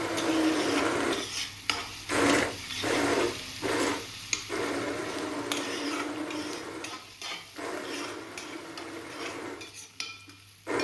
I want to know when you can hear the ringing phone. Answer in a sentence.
You can't hear the ringing phone here.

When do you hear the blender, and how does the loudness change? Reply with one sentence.
You can hear the blender from 0.0 to 10.7 s, getting quieter.